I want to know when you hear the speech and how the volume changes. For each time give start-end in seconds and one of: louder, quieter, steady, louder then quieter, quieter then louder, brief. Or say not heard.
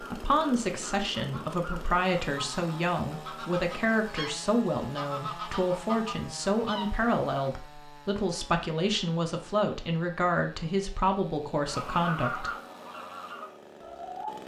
0.0-12.5 steady.